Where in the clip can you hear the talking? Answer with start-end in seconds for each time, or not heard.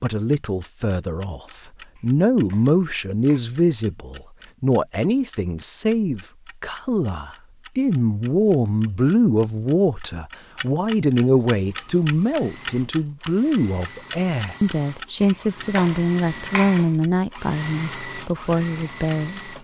0.0-19.5.